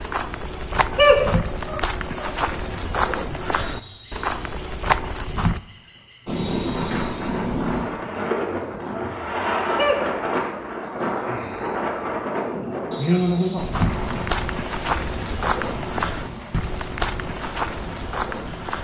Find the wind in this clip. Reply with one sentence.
The wind can be heard from 6.2 to 18.7 s.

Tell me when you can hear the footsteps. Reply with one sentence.
The footsteps can be heard from 0.0 to 5.6 s and from 13.6 to 18.7 s.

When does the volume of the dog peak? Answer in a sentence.
The volume of the dog peaks at 1 second.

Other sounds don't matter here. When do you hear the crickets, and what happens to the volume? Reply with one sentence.
The crickets can be heard from 3.6 to 18.7 s, getting louder then quieter.